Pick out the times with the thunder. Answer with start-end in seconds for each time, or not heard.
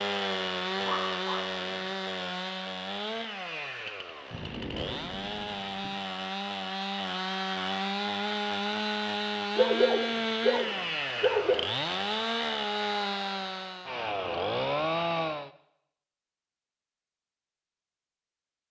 4.2-5.9.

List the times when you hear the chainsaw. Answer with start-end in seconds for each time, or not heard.
0.0-15.5.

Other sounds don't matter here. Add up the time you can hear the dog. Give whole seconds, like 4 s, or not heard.
3 s.